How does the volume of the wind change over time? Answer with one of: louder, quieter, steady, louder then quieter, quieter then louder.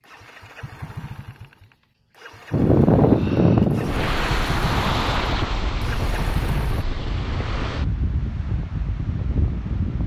quieter.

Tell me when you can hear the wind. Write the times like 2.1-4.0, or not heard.
2.5-10.0.